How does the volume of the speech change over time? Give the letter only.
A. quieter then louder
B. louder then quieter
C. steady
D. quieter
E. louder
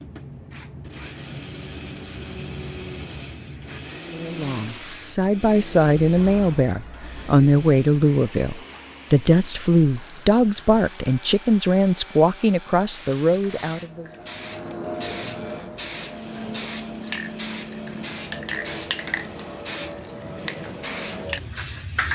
C.